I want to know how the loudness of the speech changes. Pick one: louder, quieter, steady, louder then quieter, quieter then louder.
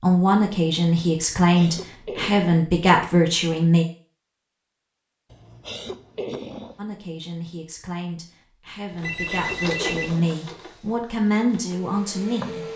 quieter then louder.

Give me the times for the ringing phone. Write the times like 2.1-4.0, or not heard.
9.0-10.2.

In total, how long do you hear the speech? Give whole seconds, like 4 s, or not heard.
10 s.